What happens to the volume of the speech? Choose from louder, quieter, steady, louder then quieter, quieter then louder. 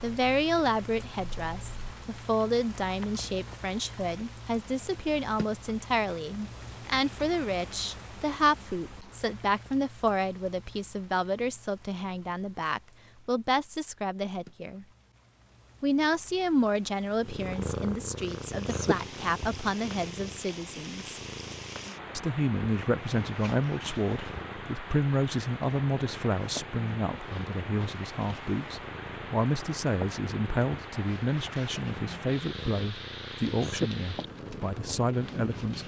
steady.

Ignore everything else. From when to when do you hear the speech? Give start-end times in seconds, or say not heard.
0.0-14.8, 15.8-21.2, 22.1-35.8.